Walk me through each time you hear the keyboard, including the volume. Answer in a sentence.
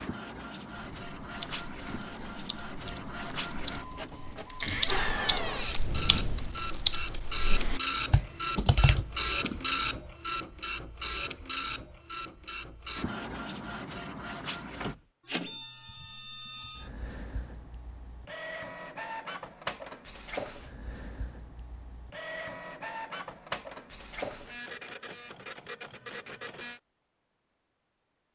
You can hear the keyboard from 1.0 to 9.6 s, getting louder.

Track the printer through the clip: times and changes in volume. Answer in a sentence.
The printer can be heard from 0.0 to 26.8 s, getting louder then quieter.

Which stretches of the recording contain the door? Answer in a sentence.
You can hear the door from 4.6 to 5.8 s.